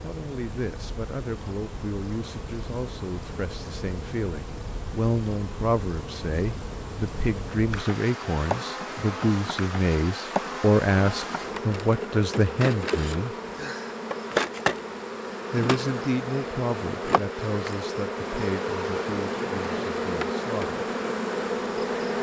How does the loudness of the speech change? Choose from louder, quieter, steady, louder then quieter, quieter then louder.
louder then quieter.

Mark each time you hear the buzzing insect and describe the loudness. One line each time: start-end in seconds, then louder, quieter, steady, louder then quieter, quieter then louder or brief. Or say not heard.
0.0-22.1 louder.